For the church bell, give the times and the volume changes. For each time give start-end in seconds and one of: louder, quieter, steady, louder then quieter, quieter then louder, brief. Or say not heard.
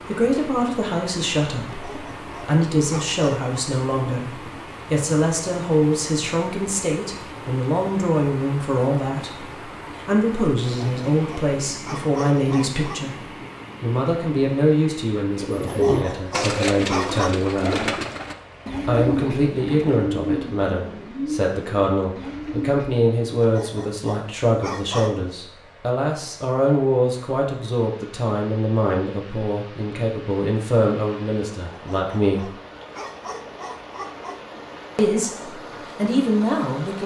not heard.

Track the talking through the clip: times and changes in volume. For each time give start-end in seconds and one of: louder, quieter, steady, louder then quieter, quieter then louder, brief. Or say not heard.
0.1-17.9 steady
18.9-32.5 steady
35.0-37.0 brief.